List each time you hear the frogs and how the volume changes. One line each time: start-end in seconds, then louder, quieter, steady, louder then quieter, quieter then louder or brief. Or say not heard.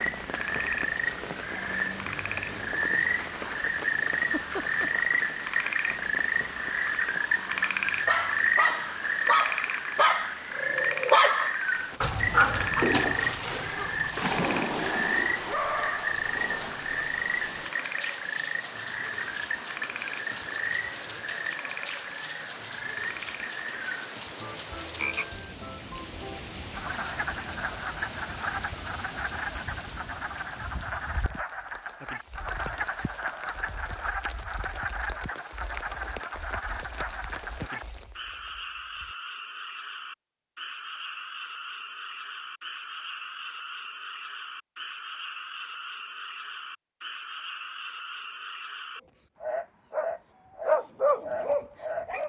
0.0-52.1 quieter.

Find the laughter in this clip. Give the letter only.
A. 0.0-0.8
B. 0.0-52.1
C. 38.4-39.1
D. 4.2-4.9
D.